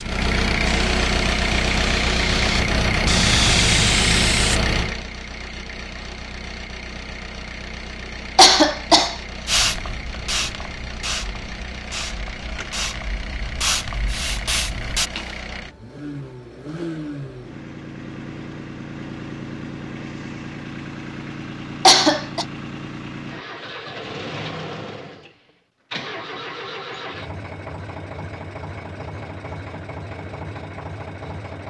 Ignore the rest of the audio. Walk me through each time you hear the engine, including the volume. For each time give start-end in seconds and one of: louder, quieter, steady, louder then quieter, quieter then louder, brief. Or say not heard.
0.0-31.6 quieter.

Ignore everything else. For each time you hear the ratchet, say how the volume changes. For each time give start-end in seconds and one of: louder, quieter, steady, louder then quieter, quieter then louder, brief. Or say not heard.
not heard.